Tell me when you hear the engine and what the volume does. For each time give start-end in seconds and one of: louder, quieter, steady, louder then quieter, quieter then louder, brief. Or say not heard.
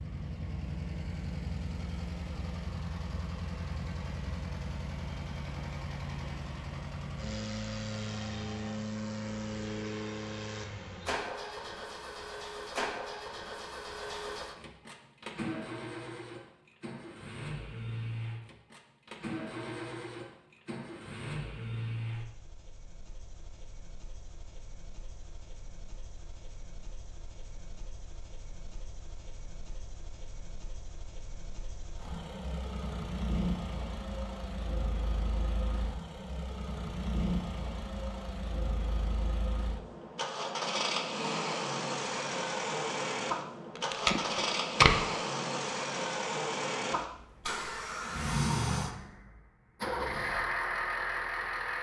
0.0-51.7 quieter then louder.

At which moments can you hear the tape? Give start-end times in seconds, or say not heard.
43.8-45.0.